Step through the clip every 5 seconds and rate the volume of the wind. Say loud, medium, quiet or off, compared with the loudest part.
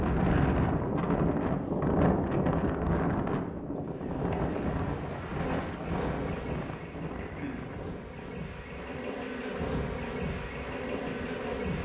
loud, medium, quiet.